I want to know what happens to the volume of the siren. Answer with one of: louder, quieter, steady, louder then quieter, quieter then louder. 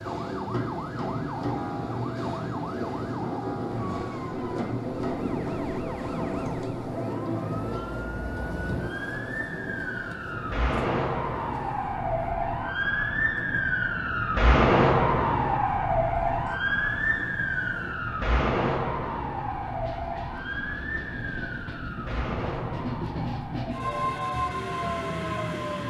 louder then quieter.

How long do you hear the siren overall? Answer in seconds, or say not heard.
26 s.